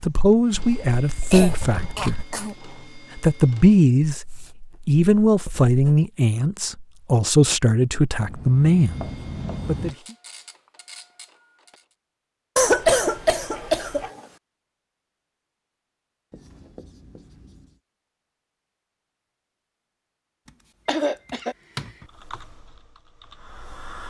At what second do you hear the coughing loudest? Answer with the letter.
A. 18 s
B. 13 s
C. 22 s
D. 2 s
B.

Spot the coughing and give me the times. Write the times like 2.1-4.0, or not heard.
1.3-2.5, 12.6-14.1, 20.9-21.6.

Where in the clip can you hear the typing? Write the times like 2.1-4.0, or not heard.
22.0-24.0.